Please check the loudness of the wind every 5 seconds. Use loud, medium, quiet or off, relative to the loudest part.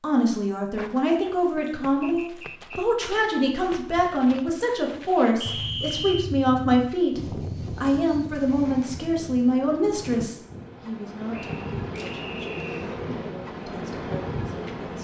off, loud, loud.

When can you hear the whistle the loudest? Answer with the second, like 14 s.
6 s.